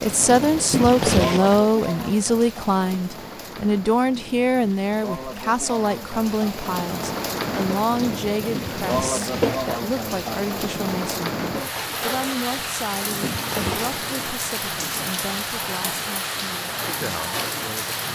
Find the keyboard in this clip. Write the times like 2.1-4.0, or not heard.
not heard.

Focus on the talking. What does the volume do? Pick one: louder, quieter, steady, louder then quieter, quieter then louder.
quieter.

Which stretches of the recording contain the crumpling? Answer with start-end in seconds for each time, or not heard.
0.7-1.6, 8.6-9.7, 13.2-13.9.